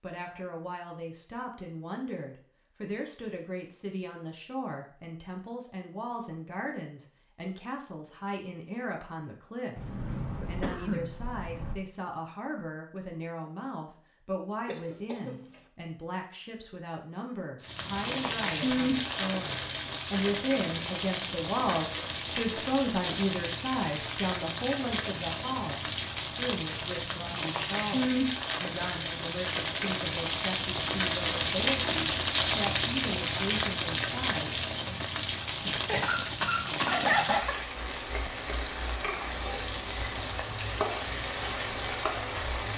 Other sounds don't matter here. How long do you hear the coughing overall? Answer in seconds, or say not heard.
5 s.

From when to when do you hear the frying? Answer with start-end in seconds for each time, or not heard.
17.6-42.7.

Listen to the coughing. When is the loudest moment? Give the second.
37 s.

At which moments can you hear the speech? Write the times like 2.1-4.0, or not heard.
0.0-35.0.